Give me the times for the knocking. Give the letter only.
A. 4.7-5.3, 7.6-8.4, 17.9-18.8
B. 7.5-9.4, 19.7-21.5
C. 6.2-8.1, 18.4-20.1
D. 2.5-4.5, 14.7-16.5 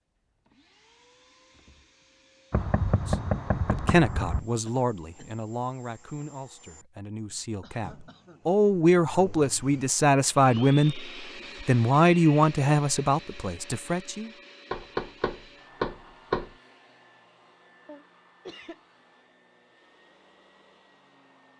D.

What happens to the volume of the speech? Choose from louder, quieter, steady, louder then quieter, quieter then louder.
quieter then louder.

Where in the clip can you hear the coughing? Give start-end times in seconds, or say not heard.
4.7-5.3, 7.6-8.4, 17.9-18.8.